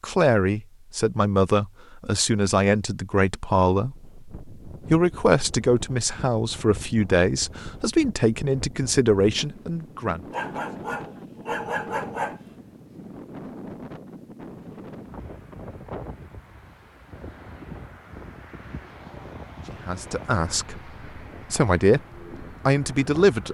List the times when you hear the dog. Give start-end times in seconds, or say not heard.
10.3-12.4.